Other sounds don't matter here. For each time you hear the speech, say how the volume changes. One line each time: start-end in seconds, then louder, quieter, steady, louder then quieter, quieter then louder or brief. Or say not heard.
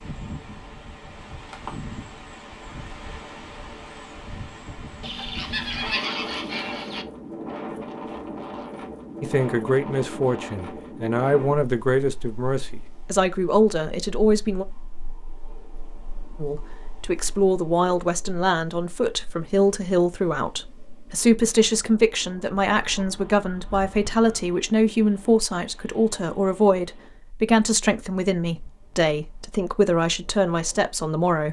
9.2-14.7 steady
16.4-31.4 steady.